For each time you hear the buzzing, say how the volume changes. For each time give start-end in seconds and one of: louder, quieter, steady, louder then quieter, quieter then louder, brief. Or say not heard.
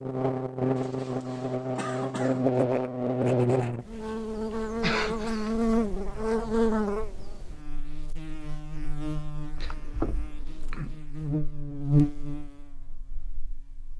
0.0-13.9 quieter then louder.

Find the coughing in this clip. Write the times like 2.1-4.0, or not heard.
0.8-2.5, 4.8-5.5, 9.6-11.0.